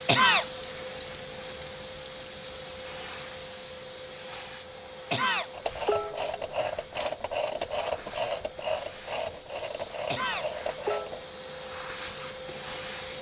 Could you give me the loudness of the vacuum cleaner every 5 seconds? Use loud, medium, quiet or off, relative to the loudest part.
loud, medium, loud.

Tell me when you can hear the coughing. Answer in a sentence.
The coughing can be heard from 0.1 to 0.5 s, from 5.1 to 6.3 s and from 10.1 to 11.2 s.